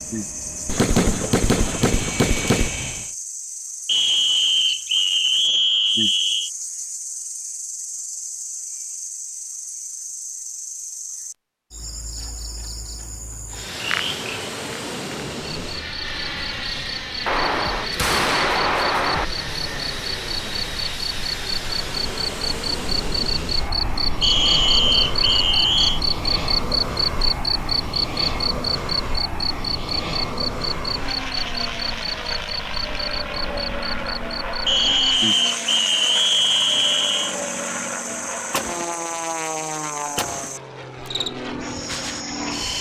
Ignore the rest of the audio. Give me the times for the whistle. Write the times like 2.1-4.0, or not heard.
3.9-6.5, 24.2-26.0, 34.6-37.4.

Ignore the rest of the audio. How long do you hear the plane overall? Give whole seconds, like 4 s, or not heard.
32 s.